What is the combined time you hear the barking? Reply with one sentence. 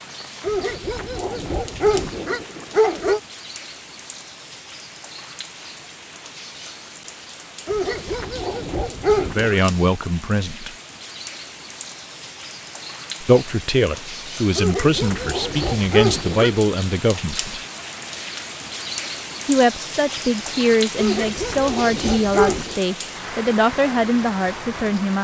You can hear the barking for 9 seconds altogether.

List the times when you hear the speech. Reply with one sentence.
You can hear the speech from 9.2 to 10.8 s, from 13.2 to 17.6 s and from 19.4 to 25.2 s.